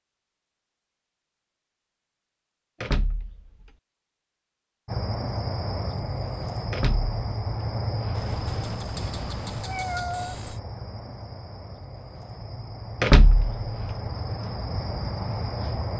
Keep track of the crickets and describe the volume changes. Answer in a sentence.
The volume of the crickets goes down, then up.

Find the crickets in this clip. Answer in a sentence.
You can hear the crickets from 4.8 to 15.9 s.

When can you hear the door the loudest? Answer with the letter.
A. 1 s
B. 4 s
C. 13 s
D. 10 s
C.